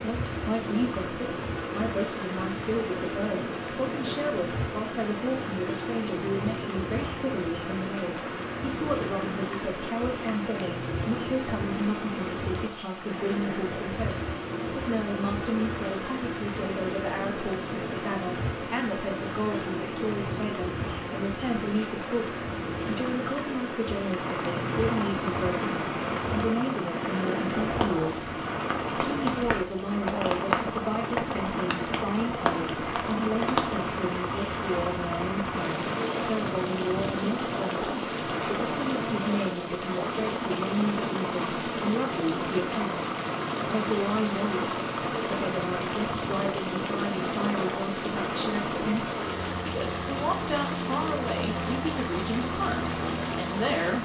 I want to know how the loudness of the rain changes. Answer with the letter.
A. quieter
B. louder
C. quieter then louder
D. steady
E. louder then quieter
D.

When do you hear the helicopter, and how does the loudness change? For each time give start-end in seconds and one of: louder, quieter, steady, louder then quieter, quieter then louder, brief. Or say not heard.
24.1-54.0 steady.